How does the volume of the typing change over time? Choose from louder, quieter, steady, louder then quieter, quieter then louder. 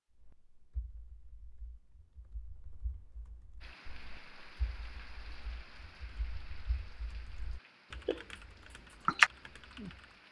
louder.